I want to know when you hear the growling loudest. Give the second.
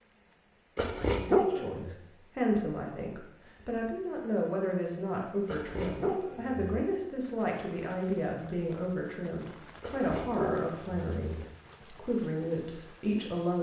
1 s.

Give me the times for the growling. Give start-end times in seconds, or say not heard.
0.8-1.9, 5.5-6.8, 9.8-11.5.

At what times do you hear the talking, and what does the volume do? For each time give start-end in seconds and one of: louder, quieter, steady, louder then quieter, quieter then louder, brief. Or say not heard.
1.5-13.5 steady.